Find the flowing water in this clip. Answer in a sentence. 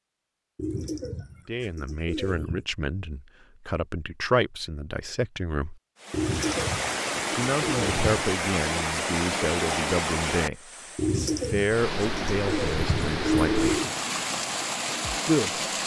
You can hear the flowing water from 6.0 to 15.8 s.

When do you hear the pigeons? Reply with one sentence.
The pigeons can be heard from 0.6 to 2.6 s, from 6.1 to 8.3 s and from 10.9 to 13.9 s.